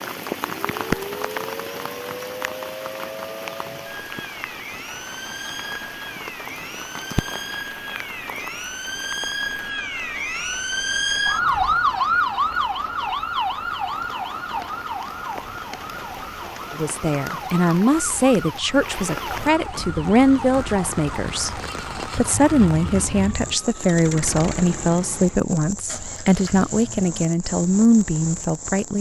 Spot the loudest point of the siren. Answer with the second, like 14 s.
12 s.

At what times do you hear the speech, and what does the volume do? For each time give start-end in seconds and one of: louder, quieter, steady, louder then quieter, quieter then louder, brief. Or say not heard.
16.8-28.9 steady.